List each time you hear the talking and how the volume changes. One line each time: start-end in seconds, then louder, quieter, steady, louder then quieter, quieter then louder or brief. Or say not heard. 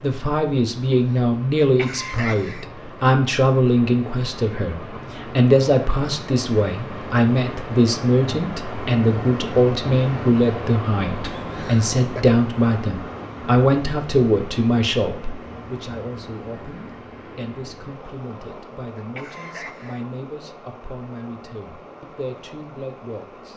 0.0-23.5 quieter.